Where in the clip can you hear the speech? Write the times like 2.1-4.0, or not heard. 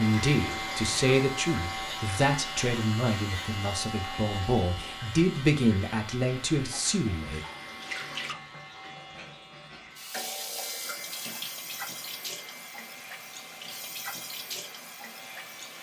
0.0-7.4.